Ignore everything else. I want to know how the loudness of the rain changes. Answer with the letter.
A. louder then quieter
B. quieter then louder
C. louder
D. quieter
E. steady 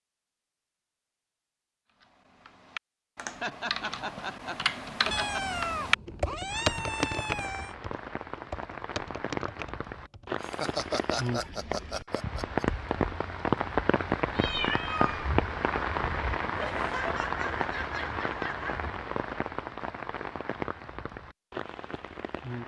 A.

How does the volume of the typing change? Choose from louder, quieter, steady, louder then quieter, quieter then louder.
louder then quieter.